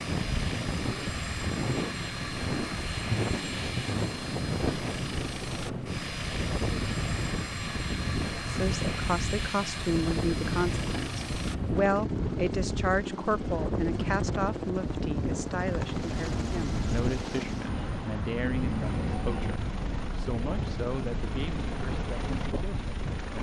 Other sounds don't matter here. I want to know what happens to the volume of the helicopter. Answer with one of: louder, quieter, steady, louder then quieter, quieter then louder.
steady.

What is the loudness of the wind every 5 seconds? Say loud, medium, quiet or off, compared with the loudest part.
loud, loud, loud, loud, medium.